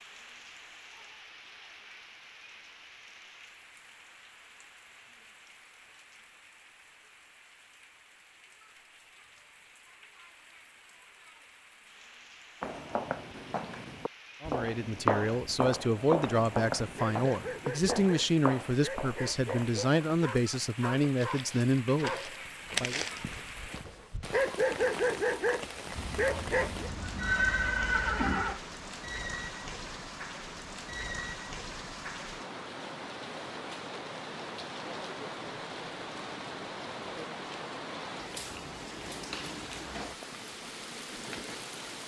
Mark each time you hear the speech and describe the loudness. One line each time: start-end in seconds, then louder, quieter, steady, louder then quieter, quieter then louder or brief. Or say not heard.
14.4-23.0 steady.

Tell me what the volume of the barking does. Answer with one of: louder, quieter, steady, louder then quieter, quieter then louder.
louder.